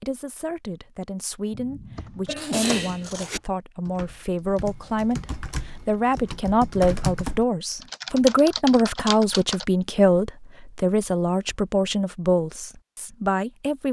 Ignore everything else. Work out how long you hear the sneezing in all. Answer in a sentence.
You can hear the sneezing for 2 seconds altogether.